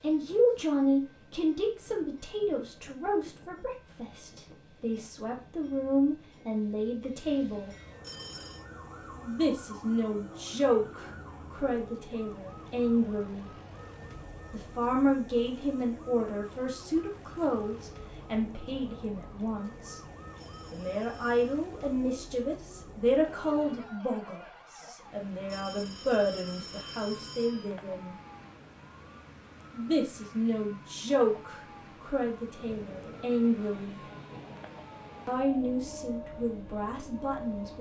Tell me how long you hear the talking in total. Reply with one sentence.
You can hear the talking for 32 seconds altogether.